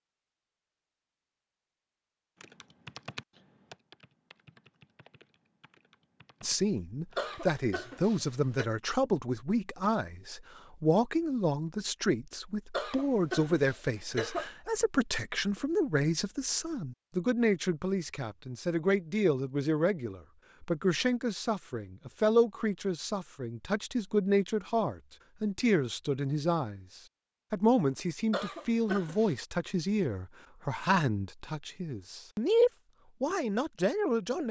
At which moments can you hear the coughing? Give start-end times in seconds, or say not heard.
7.2-8.7, 12.7-14.4, 28.3-29.4.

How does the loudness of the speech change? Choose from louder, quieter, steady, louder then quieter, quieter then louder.
steady.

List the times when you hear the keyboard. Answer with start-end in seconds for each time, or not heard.
2.4-7.3.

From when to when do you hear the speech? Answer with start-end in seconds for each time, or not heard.
6.4-34.4.